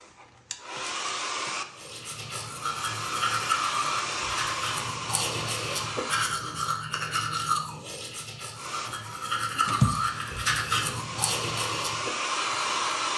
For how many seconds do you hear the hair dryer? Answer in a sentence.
The hair dryer can be heard for 11 seconds in total.